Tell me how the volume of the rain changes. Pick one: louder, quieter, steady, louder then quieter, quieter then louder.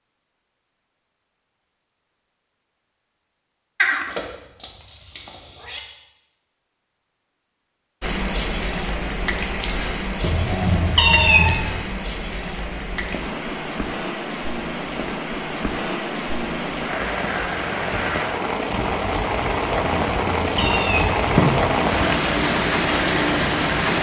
louder.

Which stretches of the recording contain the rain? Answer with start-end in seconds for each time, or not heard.
8.0-23.9.